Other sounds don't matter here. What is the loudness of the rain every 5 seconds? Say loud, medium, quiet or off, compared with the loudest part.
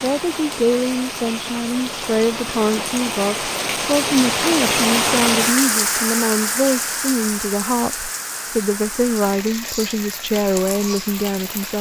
loud, loud, medium.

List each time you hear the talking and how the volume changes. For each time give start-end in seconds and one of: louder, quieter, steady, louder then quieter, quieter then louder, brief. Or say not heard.
0.0-11.7 steady.